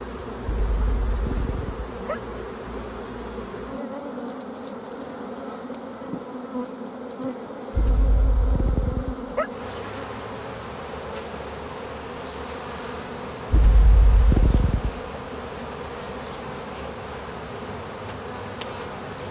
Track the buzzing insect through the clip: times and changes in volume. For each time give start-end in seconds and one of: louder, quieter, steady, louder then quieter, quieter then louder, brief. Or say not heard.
0.0-19.2 steady.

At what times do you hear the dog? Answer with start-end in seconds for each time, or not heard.
0.5-2.2, 7.7-9.5, 13.5-15.0.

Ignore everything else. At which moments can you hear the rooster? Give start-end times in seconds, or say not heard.
not heard.